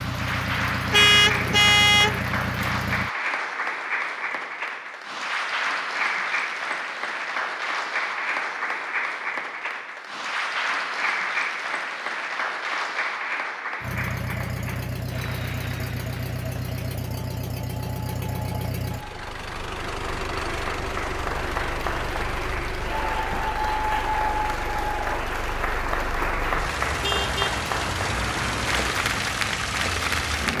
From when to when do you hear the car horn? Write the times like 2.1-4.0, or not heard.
0.9-2.2, 27.0-29.0.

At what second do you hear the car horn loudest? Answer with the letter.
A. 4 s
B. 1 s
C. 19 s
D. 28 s
B.